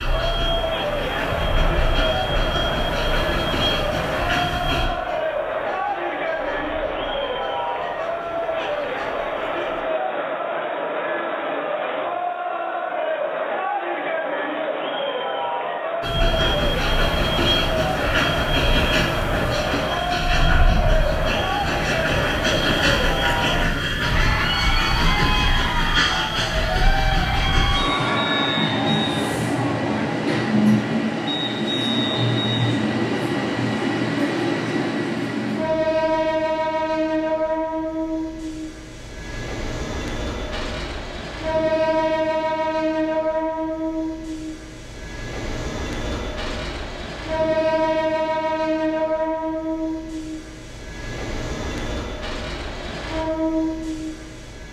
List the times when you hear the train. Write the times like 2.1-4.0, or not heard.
0.0-9.8, 16.0-54.6.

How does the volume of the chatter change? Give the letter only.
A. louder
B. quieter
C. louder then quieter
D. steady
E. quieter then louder
D.